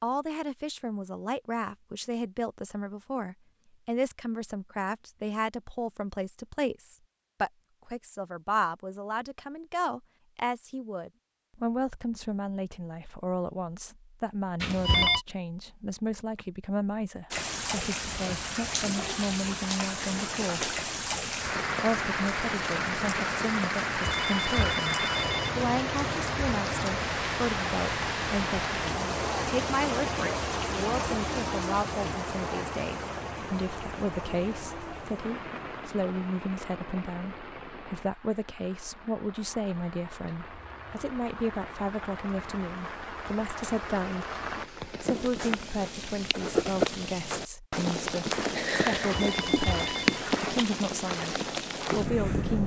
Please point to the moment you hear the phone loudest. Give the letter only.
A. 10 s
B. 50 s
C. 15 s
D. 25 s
C.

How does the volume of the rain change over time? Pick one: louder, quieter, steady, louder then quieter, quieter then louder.
quieter then louder.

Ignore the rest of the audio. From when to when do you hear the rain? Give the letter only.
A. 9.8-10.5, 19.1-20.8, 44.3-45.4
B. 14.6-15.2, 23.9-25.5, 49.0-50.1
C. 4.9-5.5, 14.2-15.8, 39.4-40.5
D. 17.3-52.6
D.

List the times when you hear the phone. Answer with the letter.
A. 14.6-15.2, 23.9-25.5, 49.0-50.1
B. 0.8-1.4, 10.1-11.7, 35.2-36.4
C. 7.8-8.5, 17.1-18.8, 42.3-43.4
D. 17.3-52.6
A.